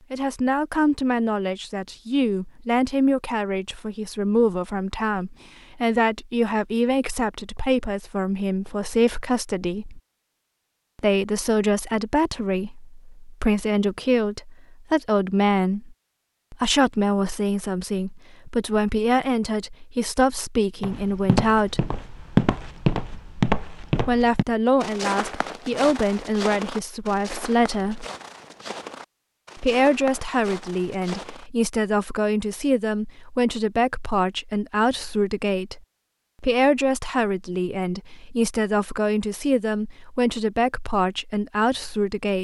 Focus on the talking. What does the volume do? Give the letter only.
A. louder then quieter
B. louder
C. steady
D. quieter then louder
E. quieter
C.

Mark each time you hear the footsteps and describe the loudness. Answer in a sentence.
The footsteps can be heard from 20.8 to 31.5 s, getting quieter.